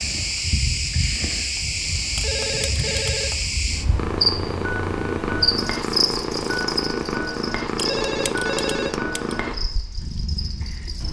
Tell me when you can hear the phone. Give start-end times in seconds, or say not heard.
2.1-3.4, 7.8-9.3.